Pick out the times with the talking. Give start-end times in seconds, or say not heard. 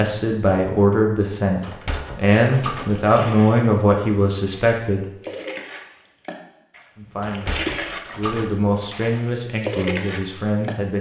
0.0-5.0, 7.0-10.9.